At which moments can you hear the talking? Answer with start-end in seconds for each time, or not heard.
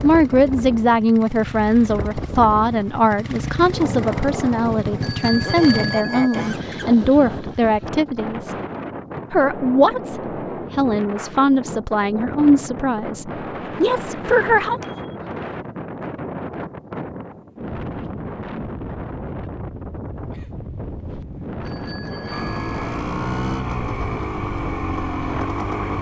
0.0-8.6, 9.3-14.8.